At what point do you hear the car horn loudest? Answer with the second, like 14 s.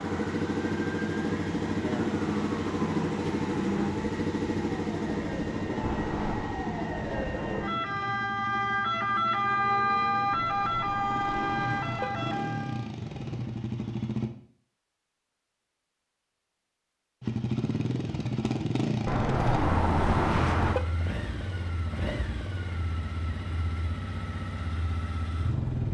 20 s.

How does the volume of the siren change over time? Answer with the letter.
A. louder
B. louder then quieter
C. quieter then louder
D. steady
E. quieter
A.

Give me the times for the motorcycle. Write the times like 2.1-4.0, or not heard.
0.0-14.3, 17.2-25.8.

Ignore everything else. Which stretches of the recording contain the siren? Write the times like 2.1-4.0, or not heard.
0.0-12.9.